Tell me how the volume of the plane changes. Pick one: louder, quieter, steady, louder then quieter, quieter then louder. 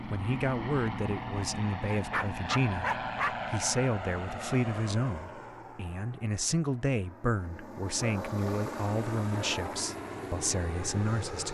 quieter then louder.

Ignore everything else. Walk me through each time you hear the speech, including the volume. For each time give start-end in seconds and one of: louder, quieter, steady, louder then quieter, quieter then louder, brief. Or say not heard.
0.1-11.5 steady.